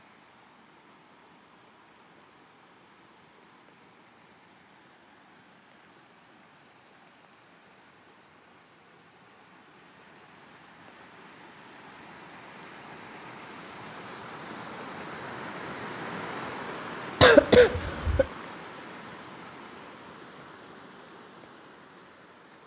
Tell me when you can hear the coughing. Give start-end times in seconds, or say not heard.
17.2-18.2.